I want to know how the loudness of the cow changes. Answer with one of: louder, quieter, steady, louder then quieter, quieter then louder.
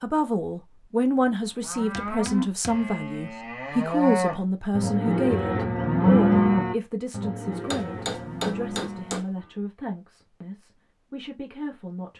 louder then quieter.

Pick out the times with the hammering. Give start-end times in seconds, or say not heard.
1.8-3.4, 7.5-9.3.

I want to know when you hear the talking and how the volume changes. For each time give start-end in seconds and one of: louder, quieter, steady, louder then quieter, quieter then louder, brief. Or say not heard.
0.0-12.1 quieter.